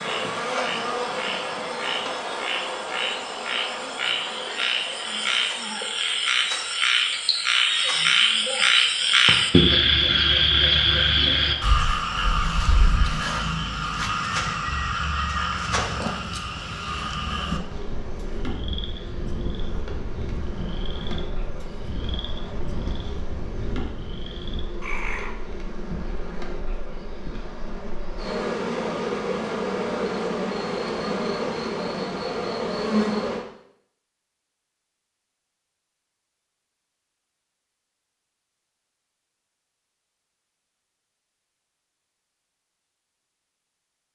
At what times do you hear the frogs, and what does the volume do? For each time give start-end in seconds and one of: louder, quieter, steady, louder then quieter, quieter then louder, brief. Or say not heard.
0.0-25.4 louder then quieter.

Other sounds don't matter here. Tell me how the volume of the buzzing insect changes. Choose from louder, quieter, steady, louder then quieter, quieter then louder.
quieter then louder.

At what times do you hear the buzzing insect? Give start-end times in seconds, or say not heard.
0.0-33.5.